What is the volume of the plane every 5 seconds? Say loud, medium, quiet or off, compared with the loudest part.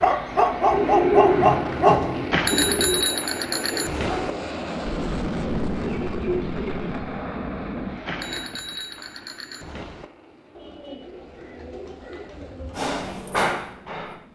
loud, loud, quiet.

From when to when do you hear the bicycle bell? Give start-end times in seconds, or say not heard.
2.3-4.3, 8.1-10.1.